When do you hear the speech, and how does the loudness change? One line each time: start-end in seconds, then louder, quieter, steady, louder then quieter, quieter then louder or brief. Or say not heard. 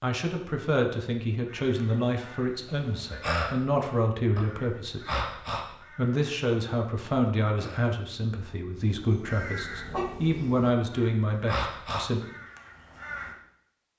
0.0-12.2 steady.